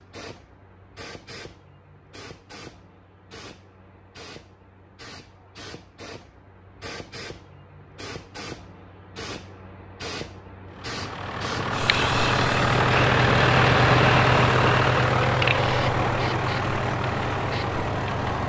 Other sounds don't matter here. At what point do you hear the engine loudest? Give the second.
14 s.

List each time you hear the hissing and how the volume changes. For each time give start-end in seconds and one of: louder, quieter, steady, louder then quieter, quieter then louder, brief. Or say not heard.
0.0-18.4 louder.